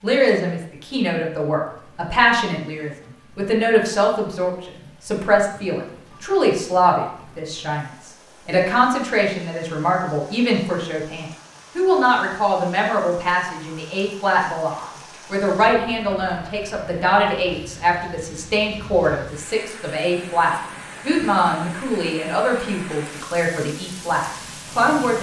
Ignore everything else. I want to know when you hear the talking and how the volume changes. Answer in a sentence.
You can hear the talking from 0.0 to 25.1 s, at a steady volume.